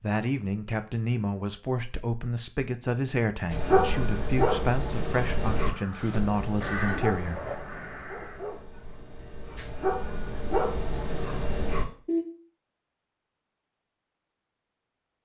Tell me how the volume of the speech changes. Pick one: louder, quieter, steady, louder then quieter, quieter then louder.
steady.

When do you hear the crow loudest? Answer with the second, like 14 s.
7 s.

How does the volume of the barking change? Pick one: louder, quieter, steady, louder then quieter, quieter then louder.
quieter then louder.